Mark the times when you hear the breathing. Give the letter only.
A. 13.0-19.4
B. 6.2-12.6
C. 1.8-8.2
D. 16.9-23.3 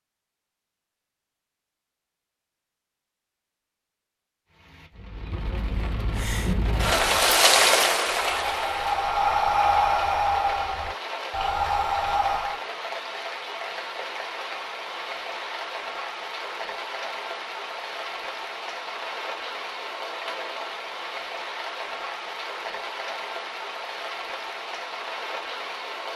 B.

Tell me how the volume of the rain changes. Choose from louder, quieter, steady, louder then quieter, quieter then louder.
quieter.